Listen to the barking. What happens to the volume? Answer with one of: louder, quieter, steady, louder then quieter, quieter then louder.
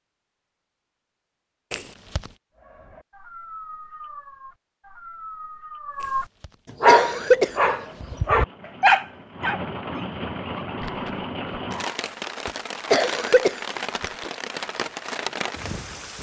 louder then quieter.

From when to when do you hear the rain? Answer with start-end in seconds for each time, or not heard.
6.9-16.1.